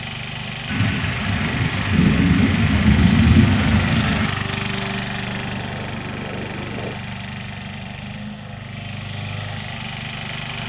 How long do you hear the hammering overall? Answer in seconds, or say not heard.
2 s.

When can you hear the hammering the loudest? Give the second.
7 s.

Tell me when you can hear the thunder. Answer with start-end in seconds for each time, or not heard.
0.7-4.3.